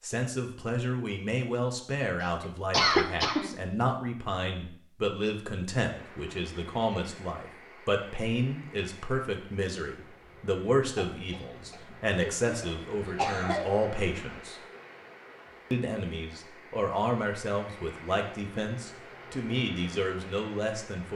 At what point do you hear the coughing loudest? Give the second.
3 s.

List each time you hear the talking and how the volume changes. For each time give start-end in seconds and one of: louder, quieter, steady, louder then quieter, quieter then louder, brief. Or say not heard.
0.0-14.6 steady
15.7-21.1 steady.